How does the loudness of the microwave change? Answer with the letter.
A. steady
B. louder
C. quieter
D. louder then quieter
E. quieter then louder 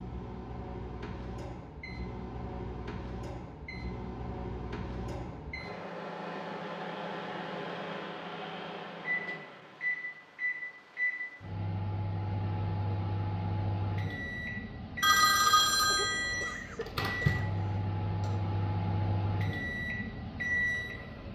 B.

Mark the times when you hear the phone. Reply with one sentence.
You can hear the phone from 15.0 to 16.4 s.